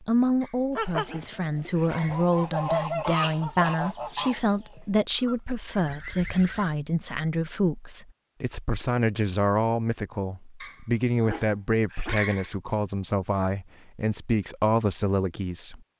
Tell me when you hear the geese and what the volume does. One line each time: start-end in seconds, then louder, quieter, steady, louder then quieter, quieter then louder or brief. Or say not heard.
0.8-6.8 louder then quieter.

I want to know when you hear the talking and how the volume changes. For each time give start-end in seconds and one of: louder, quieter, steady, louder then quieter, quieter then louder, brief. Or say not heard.
0.0-15.8 steady.